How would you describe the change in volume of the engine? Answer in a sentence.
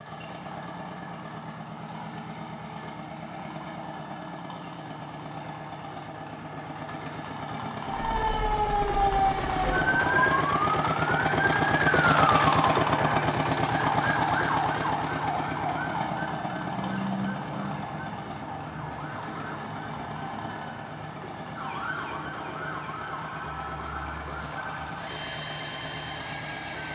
The volume of the engine goes up, then down.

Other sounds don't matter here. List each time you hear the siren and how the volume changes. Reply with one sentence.
You can hear the siren from 7.8 to 26.8 s, getting quieter.